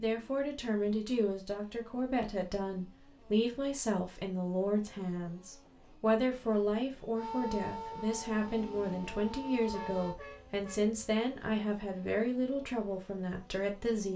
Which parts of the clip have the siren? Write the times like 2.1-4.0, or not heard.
7.2-10.2.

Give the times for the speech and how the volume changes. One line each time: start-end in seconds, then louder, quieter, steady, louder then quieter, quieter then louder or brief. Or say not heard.
0.0-14.1 steady.